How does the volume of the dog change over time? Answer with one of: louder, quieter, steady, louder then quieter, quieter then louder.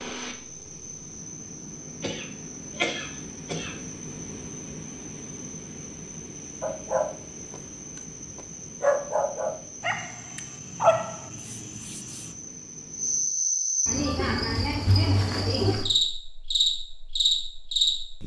louder then quieter.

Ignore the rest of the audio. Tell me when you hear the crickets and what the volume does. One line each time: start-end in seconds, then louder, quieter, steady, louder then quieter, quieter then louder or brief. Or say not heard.
0.2-18.2 louder.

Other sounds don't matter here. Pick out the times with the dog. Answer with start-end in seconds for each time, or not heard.
6.6-12.3.